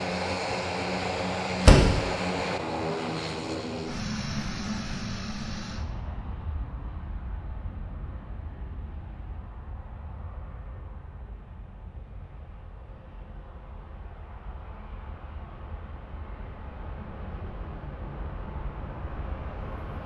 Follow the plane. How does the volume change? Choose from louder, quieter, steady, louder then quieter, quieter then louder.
quieter then louder.